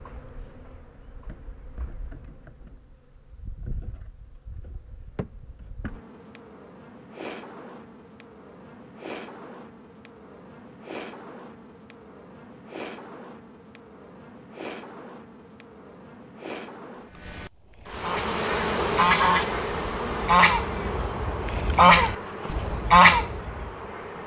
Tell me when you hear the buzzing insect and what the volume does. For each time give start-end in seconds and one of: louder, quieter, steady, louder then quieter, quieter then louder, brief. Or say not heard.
0.0-24.2 louder.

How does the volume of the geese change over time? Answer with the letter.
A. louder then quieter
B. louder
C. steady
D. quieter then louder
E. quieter
B.